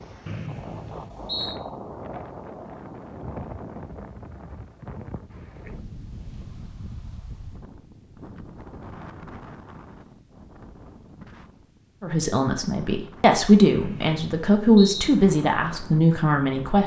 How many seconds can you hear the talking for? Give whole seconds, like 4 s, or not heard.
5 s.